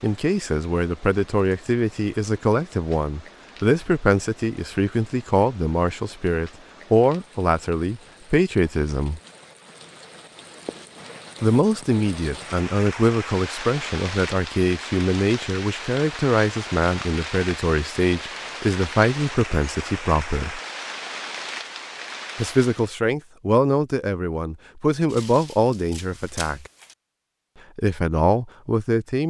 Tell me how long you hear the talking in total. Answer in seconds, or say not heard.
24 s.